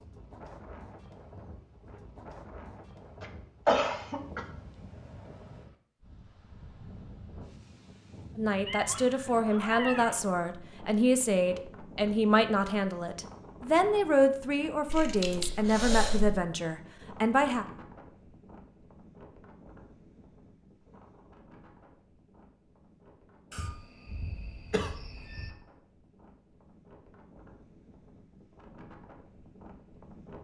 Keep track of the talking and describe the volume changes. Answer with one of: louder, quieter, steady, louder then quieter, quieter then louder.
steady.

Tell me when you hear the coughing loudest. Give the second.
4 s.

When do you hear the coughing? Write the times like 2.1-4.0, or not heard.
3.2-4.5, 14.8-16.4, 23.5-25.5.